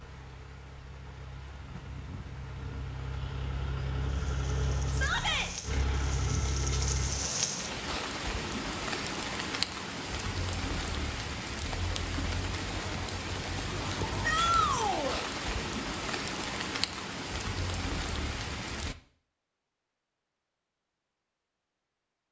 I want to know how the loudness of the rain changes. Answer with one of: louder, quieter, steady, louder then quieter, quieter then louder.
louder.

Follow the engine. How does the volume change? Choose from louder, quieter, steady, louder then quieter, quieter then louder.
louder.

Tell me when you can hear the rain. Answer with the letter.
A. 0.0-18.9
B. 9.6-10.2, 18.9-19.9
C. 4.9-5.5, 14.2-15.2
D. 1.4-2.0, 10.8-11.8
A.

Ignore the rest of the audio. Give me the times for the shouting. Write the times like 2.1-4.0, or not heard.
4.9-5.5, 14.2-15.2.